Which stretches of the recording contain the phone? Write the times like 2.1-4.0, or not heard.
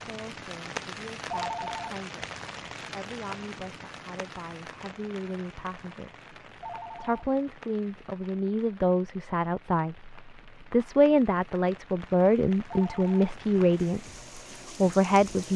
1.3-1.9, 6.6-7.2, 12.7-13.3.